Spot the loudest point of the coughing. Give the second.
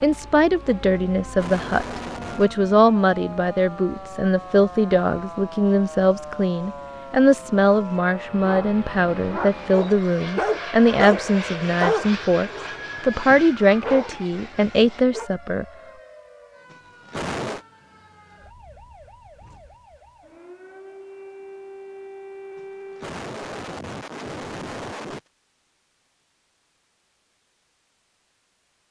17 s.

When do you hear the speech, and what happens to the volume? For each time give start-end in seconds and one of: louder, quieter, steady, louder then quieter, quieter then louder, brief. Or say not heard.
0.0-15.7 steady.